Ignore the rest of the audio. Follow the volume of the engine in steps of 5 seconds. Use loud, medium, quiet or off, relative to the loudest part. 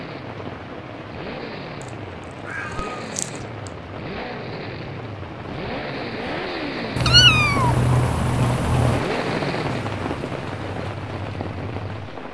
medium, loud, medium.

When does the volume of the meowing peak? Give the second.
7 s.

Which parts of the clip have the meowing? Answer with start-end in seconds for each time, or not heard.
2.5-3.3, 7.0-9.1.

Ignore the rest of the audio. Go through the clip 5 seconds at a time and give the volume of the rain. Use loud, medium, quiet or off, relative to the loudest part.
medium, loud, loud.